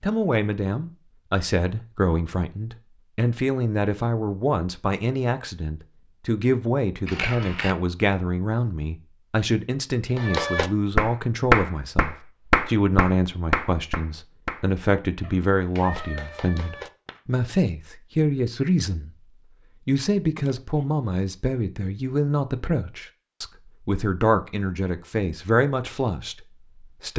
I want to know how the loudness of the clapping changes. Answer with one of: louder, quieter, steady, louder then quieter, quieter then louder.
quieter.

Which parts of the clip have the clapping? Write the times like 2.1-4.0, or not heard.
10.2-17.2.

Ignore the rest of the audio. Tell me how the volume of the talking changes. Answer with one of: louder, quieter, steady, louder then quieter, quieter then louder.
steady.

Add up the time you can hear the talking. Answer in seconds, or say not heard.
26 s.